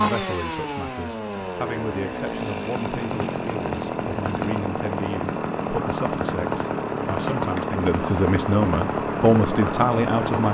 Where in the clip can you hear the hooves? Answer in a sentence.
The hooves can't be heard in this clip.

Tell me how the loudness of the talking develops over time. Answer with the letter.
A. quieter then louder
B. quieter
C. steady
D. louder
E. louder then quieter
D.